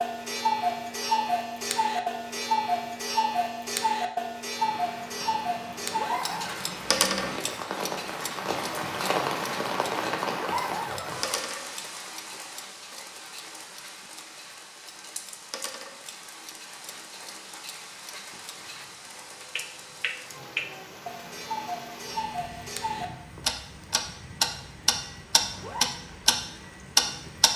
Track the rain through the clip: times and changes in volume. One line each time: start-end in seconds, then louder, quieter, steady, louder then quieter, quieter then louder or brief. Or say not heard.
4.5-27.5 quieter.